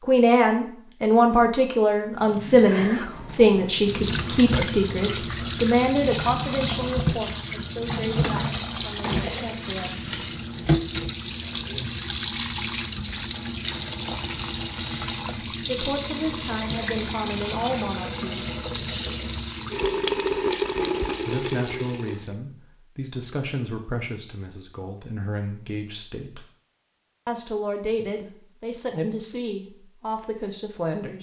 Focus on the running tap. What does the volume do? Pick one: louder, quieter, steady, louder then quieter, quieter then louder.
steady.